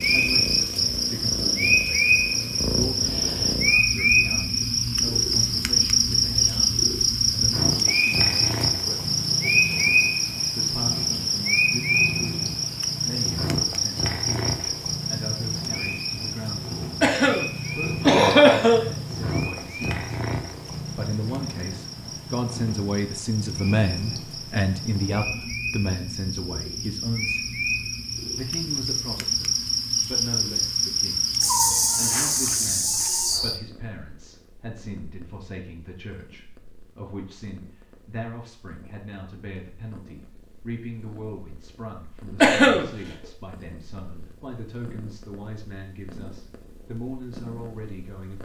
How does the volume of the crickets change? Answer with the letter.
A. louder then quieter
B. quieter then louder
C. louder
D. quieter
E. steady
B.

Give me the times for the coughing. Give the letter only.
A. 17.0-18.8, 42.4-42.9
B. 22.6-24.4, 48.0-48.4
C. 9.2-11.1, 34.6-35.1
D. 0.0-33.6
A.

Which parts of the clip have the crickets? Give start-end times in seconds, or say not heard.
0.0-33.6.